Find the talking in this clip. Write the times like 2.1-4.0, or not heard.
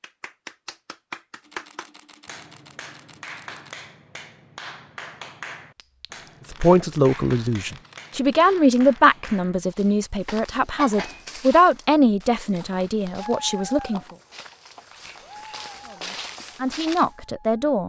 6.5-14.0, 15.8-17.8.